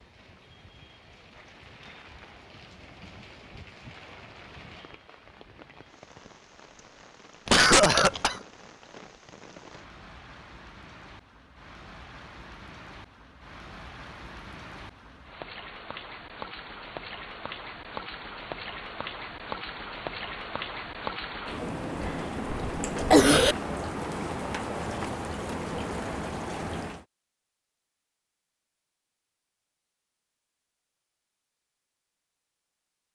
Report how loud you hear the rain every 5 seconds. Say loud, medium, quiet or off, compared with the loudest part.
quiet, quiet, quiet, medium, loud, loud, off.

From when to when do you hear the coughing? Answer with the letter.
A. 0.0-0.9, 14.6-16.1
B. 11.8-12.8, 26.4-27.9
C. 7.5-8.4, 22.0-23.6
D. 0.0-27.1
C.